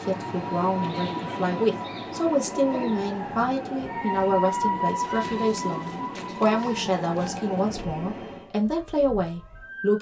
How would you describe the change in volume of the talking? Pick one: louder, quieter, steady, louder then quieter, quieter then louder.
steady.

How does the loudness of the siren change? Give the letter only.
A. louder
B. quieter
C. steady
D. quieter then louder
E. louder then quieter
E.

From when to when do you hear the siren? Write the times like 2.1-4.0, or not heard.
0.0-9.9.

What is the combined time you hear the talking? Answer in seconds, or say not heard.
10 s.